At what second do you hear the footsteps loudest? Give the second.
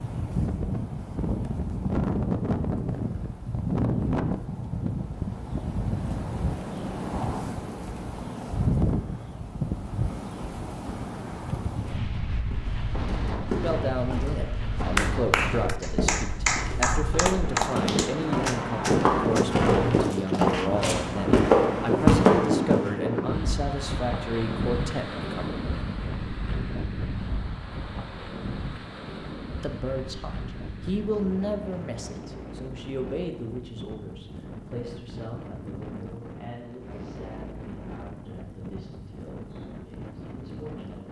22 s.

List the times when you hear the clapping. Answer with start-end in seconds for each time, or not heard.
14.9-20.7.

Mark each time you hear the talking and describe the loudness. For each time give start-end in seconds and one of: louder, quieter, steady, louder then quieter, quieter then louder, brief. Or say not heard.
13.6-25.6 steady
29.6-41.0 quieter.